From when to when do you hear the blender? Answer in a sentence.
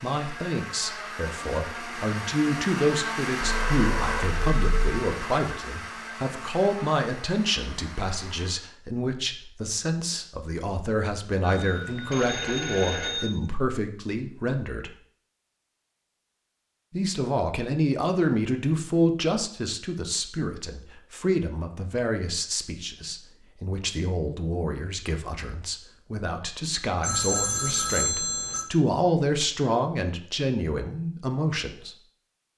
The blender can be heard from 0.0 to 8.7 s.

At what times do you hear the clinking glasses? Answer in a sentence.
You can't hear the clinking glasses here.